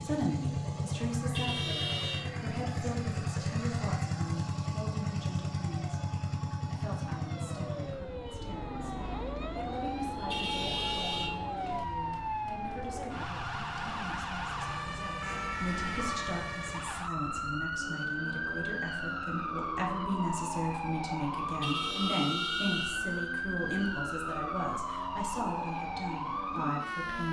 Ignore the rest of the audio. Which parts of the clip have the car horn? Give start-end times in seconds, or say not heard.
1.3-2.2, 10.2-11.3, 21.6-23.0.